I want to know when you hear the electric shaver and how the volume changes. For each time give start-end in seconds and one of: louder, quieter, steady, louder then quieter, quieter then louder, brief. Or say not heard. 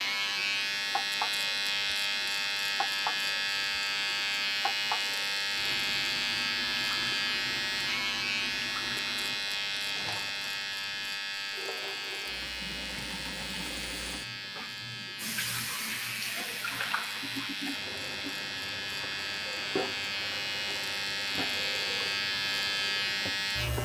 0.0-23.8 quieter then louder.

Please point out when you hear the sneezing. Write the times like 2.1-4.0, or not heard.
not heard.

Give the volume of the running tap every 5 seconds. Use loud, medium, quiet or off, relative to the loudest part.
loud, medium, medium, loud, medium.